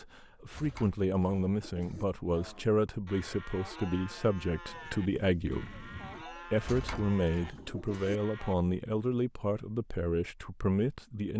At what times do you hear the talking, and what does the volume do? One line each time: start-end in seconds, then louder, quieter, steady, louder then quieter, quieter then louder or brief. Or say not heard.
0.0-11.3 steady.